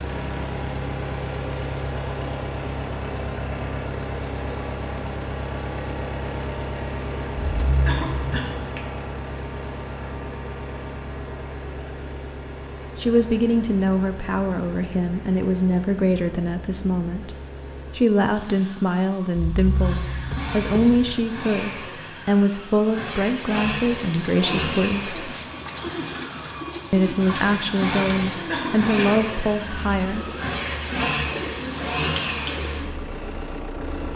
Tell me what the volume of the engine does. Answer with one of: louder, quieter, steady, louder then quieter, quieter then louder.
quieter then louder.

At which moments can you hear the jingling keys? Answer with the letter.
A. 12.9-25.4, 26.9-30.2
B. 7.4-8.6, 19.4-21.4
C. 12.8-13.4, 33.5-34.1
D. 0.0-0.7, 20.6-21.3
B.